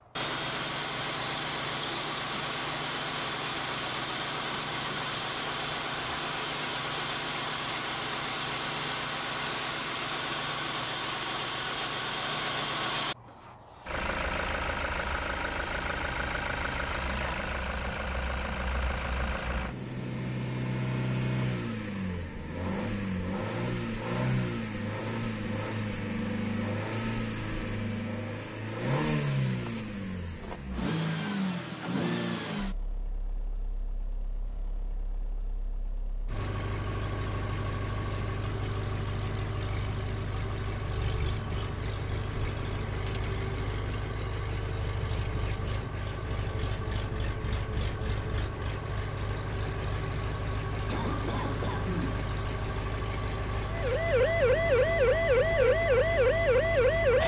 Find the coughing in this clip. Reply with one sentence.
The coughing can be heard from 50.9 to 52.2 s.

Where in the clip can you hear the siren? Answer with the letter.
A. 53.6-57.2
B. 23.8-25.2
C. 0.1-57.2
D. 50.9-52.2
A.